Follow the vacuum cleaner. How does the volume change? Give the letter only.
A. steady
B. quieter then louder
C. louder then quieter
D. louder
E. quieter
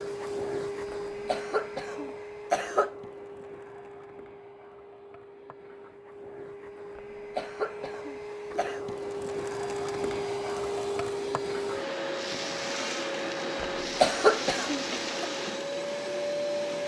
B.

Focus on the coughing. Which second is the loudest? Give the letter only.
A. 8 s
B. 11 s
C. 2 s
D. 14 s
D.